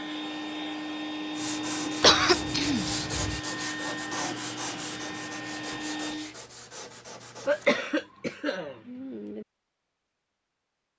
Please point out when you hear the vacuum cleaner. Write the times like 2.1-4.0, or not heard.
0.0-6.3.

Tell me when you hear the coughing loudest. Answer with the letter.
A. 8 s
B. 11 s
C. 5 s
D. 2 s
D.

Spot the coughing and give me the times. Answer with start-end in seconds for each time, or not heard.
2.0-3.4, 7.5-9.4.